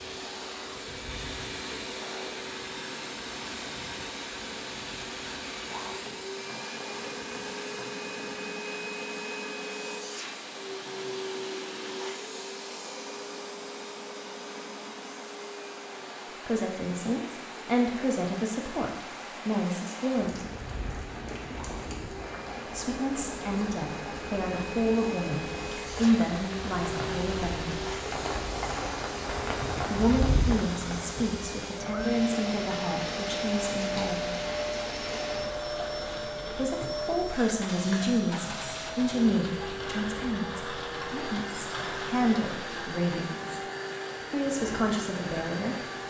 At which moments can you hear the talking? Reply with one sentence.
You can hear the talking from 16.4 to 20.5 s, from 22.8 to 27.9 s, from 29.9 to 34.4 s, from 36.5 to 43.5 s and from 44.3 to 45.8 s.